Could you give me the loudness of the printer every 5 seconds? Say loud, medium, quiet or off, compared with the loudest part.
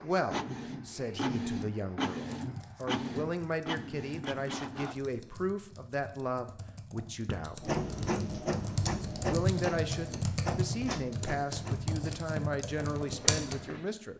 loud, loud, medium.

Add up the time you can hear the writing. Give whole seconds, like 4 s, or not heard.
not heard.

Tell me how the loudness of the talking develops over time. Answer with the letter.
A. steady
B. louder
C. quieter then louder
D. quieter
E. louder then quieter
A.